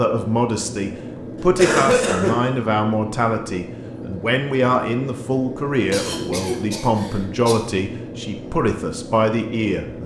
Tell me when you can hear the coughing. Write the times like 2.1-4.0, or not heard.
1.1-2.5, 5.9-7.5.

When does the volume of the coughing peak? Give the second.
2 s.